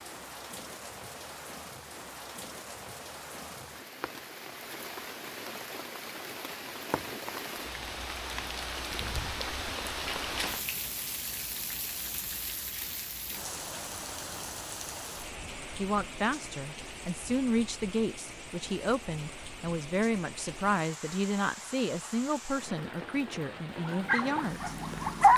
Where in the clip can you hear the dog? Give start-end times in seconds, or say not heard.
23.9-25.3.